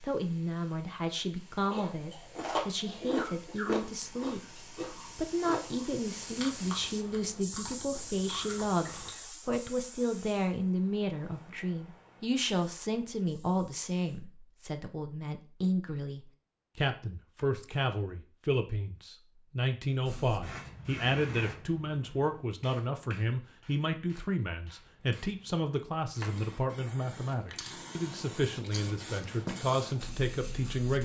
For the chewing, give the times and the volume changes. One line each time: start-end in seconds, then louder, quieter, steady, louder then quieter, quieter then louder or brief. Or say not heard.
1.6-9.1 quieter.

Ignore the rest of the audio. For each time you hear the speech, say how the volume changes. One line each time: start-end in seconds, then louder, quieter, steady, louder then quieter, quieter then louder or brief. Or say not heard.
0.0-31.0 steady.